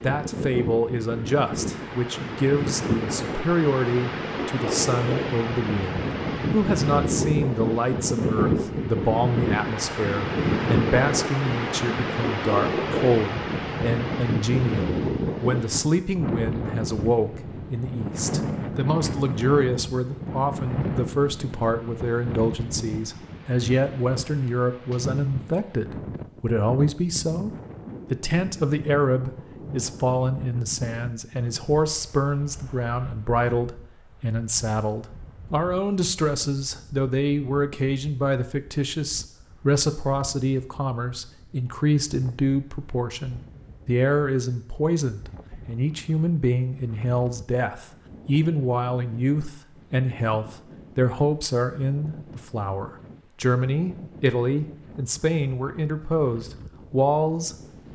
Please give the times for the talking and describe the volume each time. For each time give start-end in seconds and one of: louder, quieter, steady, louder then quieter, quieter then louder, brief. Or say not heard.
0.0-27.5 steady
28.1-57.9 steady.